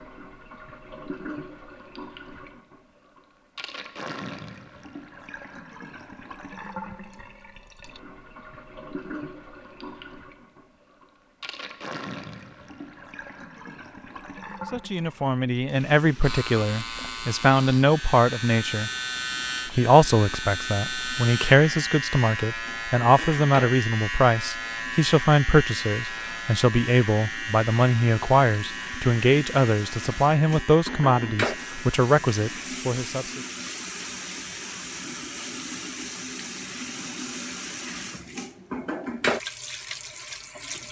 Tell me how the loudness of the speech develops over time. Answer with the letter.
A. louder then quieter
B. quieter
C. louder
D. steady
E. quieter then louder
D.